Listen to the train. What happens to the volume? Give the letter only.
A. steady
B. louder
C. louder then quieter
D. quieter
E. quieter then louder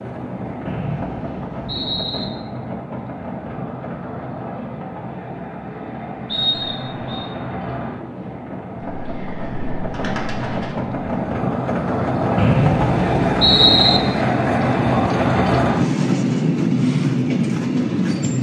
B.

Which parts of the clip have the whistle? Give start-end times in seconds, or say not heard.
0.7-2.2, 6.2-7.2, 12.3-14.0.